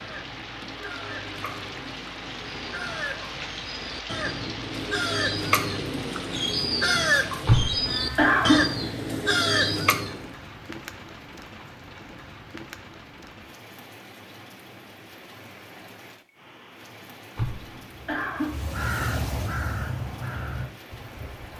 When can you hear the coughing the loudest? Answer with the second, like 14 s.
8 s.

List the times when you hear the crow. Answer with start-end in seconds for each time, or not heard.
0.0-10.2, 18.4-21.5.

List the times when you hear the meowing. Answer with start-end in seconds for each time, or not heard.
not heard.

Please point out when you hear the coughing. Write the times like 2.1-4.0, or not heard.
7.5-8.7, 17.4-18.6.